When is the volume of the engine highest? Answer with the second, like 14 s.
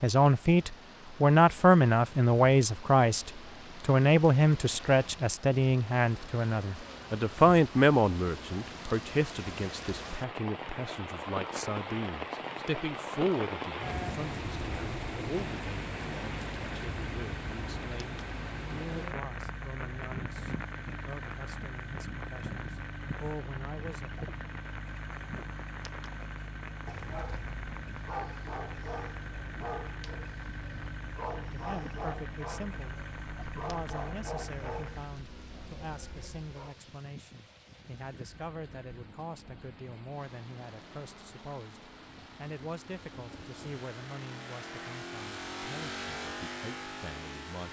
46 s.